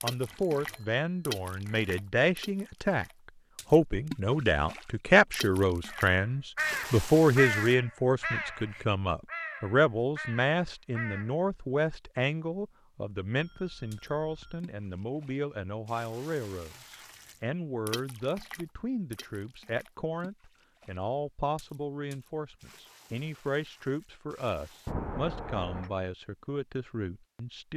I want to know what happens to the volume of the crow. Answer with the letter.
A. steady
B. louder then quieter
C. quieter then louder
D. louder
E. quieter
E.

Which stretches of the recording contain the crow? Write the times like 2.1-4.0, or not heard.
5.8-11.3.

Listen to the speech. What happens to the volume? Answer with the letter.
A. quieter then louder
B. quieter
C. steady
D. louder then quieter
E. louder
B.